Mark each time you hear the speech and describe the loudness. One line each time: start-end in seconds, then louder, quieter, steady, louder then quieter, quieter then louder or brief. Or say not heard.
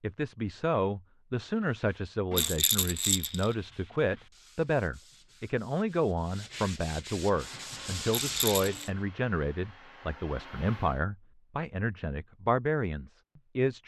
0.0-13.8 steady.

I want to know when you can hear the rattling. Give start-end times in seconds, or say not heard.
2.3-3.5, 8.1-8.9.